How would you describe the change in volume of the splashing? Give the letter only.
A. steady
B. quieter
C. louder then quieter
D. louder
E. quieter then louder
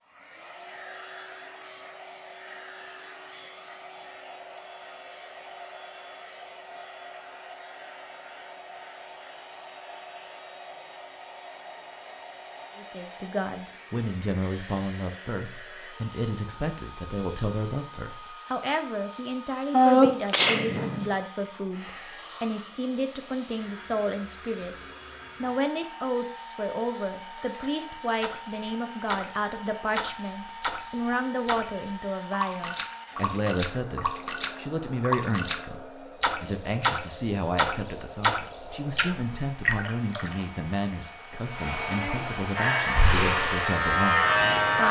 D.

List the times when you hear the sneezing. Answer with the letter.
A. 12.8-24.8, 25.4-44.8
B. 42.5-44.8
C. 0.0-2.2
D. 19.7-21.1
D.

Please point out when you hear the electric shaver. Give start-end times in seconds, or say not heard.
42.5-44.8.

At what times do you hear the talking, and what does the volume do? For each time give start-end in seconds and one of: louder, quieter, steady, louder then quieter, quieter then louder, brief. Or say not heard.
12.8-24.8 steady
25.4-44.8 steady.